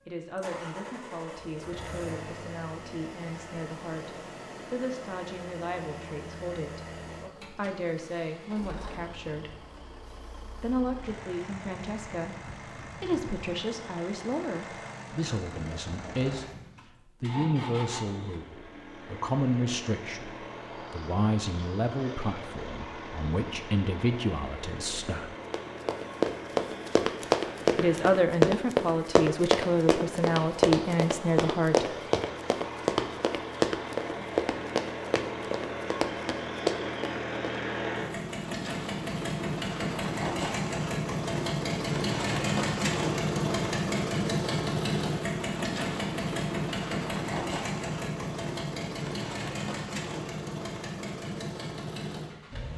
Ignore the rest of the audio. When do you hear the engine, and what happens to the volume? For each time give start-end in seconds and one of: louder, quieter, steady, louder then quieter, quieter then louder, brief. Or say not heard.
0.0-52.7 louder.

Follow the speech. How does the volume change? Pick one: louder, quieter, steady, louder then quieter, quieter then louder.
louder.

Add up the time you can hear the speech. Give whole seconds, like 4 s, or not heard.
28 s.